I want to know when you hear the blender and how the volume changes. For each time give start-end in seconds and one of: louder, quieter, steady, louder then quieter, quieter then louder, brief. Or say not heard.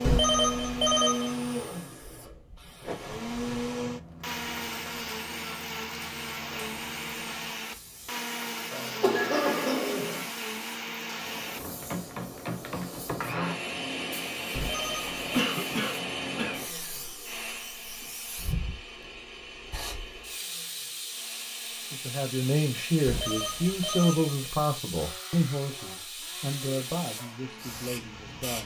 0.0-28.6 quieter.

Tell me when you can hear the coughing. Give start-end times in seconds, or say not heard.
8.7-10.2, 15.3-16.6.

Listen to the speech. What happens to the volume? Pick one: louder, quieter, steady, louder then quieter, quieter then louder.
quieter.